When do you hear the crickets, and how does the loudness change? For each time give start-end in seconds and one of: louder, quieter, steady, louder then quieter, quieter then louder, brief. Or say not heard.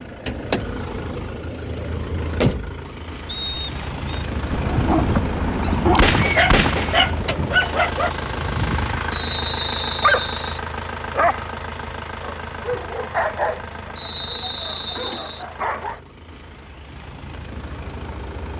not heard.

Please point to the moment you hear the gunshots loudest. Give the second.
6 s.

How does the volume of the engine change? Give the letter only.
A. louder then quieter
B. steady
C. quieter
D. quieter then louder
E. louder
C.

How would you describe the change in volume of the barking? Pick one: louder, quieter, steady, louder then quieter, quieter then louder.
quieter.